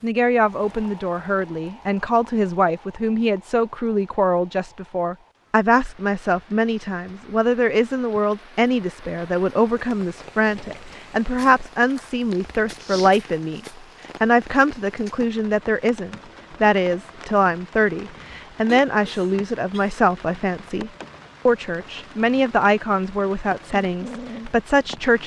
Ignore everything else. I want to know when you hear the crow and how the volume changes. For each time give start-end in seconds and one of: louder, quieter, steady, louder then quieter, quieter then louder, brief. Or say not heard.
not heard.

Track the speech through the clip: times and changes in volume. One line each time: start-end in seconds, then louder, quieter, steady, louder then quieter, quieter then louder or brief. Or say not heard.
0.0-13.6 steady
14.2-25.2 steady.